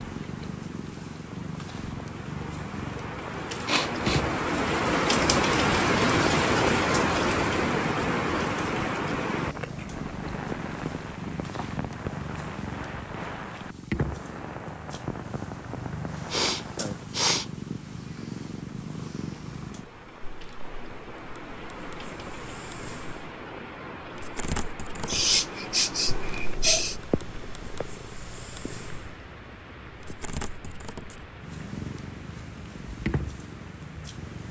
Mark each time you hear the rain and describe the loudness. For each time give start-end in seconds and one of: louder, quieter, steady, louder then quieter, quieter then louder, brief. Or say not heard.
0.0-34.4 quieter.